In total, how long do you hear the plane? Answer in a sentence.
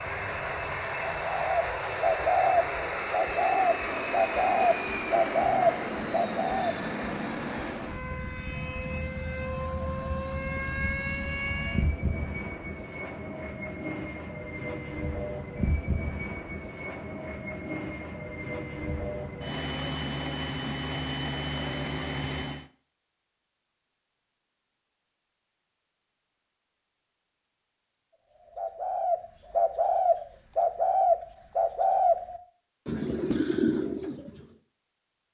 The plane can be heard for 23 seconds in total.